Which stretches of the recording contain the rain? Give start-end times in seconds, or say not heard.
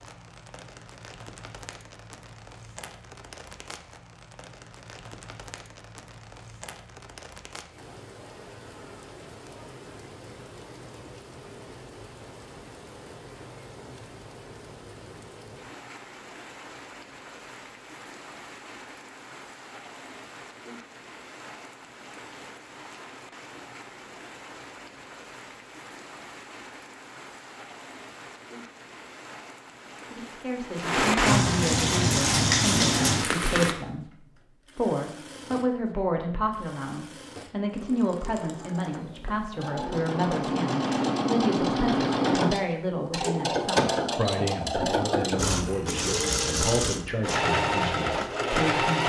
0.0-33.8.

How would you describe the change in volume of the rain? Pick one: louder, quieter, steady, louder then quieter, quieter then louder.
louder.